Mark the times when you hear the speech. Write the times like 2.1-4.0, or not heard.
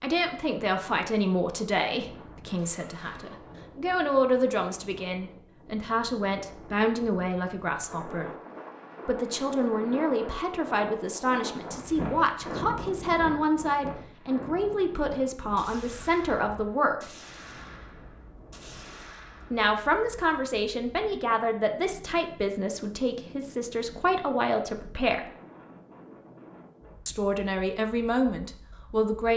0.0-8.3, 9.1-17.1, 19.5-25.2, 27.1-29.3.